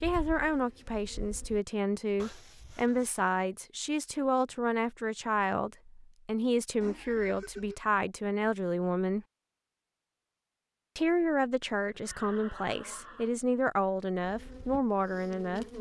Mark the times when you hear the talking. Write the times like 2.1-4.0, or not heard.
0.0-9.2, 10.9-15.7.